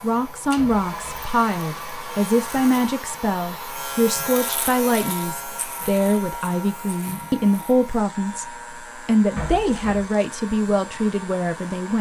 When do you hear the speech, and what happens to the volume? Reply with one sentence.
The speech can be heard from 0.0 to 8.4 s, at a steady volume; and briefly from 9.1 to 11.9 s.